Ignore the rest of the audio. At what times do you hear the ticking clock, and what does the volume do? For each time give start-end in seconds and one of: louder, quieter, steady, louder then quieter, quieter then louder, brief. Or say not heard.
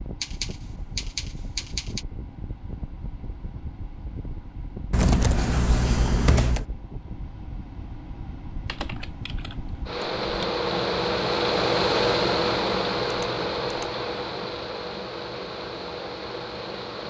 not heard.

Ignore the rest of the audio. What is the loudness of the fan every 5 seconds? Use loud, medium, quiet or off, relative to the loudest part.
quiet, quiet, loud, medium.